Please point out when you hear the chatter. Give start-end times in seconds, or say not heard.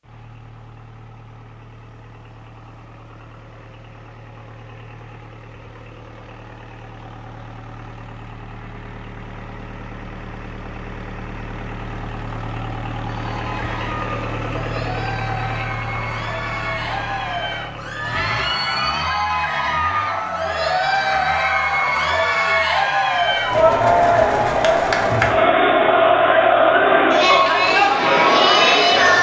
13.1-29.1.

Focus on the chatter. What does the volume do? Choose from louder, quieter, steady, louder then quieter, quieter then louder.
louder.